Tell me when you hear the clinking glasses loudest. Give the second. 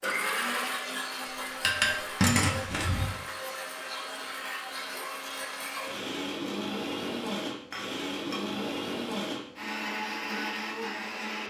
2 s.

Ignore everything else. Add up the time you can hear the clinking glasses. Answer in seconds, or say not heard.
3 s.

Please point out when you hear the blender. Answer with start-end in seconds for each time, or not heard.
0.0-11.4.